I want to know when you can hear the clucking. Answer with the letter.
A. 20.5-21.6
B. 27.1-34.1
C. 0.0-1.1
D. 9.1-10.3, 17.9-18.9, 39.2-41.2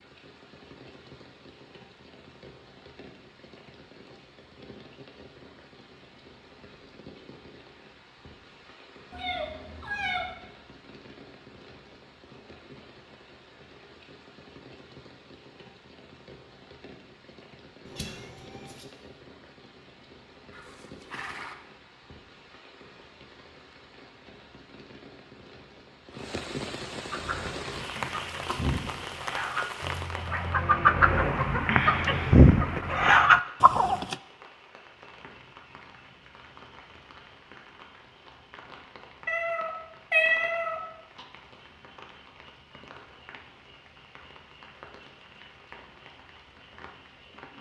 B.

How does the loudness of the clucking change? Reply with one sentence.
The loudness of the clucking goes up.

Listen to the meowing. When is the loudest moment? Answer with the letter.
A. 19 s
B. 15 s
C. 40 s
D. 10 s
C.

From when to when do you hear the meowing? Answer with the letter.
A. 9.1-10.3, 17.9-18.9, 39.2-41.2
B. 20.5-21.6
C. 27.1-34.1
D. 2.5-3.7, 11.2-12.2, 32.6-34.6
A.